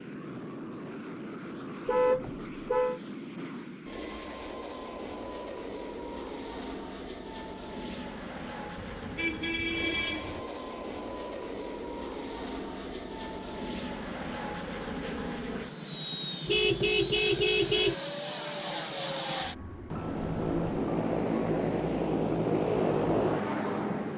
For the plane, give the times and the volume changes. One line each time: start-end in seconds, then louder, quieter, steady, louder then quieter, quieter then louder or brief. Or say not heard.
0.0-24.1 louder.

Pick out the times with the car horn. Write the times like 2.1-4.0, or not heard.
1.9-3.0, 8.8-10.4, 16.4-17.9.